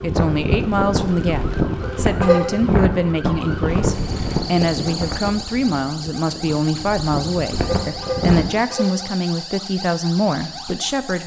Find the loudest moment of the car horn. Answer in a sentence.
The volume of the car horn peaks at 2 seconds.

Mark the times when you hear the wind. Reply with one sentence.
The wind can be heard from 0.0 to 8.5 s.